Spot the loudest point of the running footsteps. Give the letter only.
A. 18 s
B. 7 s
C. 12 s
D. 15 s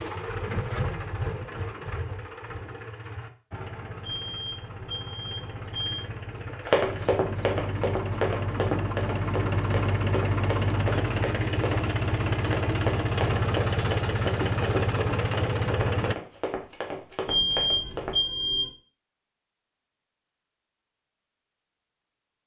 B.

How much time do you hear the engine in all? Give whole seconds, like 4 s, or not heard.
16 s.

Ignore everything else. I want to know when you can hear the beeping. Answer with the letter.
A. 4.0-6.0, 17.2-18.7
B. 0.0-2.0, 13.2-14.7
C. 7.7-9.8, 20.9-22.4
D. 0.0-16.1
A.